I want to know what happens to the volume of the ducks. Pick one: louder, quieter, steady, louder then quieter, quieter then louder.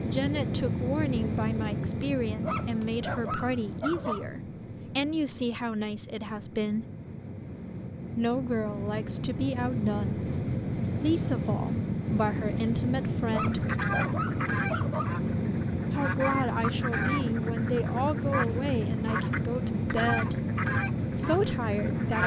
steady.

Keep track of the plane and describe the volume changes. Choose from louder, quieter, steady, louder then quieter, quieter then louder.
quieter then louder.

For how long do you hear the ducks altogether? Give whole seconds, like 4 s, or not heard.
9 s.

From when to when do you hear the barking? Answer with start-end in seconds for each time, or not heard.
2.4-4.3, 13.3-15.2.